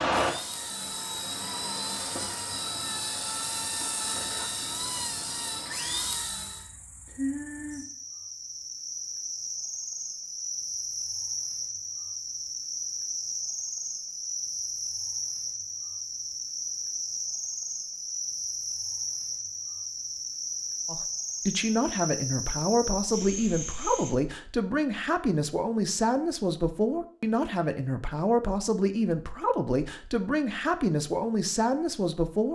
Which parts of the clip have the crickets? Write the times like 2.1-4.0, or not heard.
0.0-24.1.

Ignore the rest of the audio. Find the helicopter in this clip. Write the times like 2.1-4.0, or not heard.
0.1-6.7.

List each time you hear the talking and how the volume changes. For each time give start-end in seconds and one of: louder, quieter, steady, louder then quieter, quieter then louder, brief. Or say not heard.
20.9-32.4 steady.